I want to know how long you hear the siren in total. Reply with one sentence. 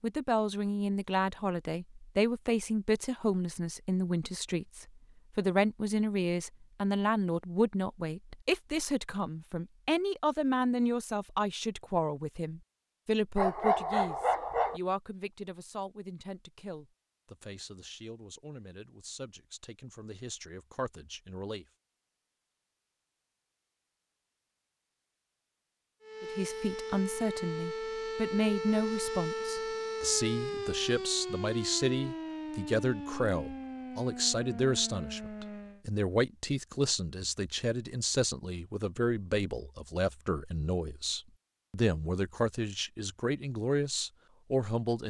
The siren can be heard for 10 seconds in total.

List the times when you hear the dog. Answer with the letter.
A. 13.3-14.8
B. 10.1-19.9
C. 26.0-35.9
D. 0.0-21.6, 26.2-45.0
A.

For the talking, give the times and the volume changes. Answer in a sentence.
You can hear the talking from 0.0 to 21.6 s, getting quieter; and from 26.2 to 45.0 s, at a steady volume.